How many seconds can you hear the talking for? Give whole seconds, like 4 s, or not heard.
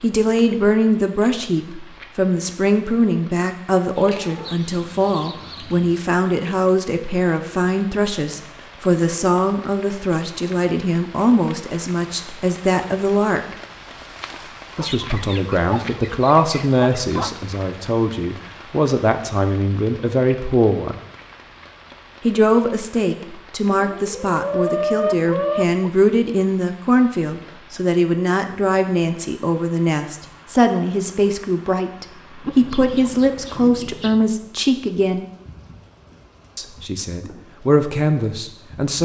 35 s.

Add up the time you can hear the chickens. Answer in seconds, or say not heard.
9 s.